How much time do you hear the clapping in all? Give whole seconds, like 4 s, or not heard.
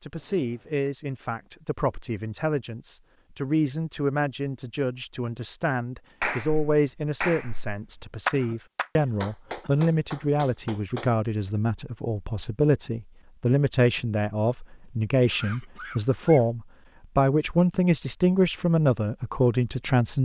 5 s.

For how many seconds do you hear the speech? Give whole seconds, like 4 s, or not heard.
20 s.